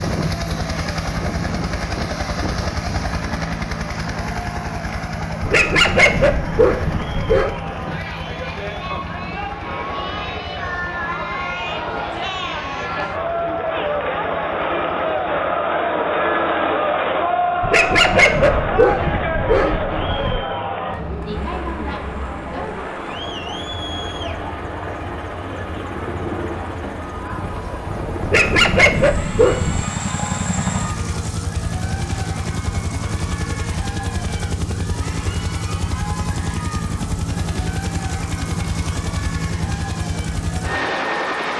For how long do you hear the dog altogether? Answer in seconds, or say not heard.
7 s.